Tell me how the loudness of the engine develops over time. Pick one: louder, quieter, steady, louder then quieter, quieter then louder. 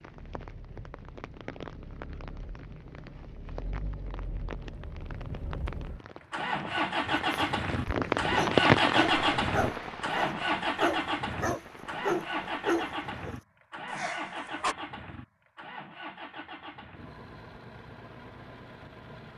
louder then quieter.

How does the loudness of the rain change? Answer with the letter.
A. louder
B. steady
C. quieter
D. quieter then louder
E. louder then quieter
E.